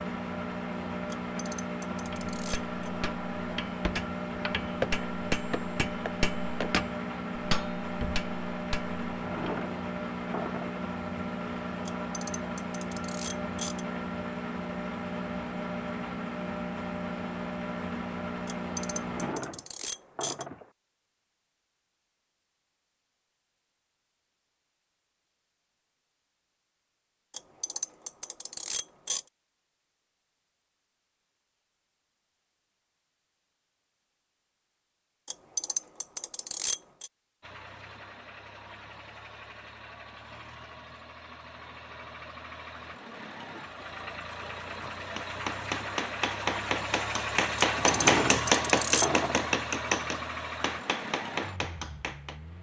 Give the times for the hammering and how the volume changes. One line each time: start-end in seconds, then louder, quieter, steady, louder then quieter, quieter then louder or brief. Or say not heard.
2.0-9.6 louder then quieter
44.8-52.4 louder then quieter.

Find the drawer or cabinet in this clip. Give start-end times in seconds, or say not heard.
9.1-10.8, 18.9-20.7, 47.8-49.5.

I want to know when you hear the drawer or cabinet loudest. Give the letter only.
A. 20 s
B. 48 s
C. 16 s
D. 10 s
B.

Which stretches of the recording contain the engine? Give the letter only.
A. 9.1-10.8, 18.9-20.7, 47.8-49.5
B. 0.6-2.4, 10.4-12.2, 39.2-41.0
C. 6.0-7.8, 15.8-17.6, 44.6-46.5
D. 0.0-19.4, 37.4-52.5
D.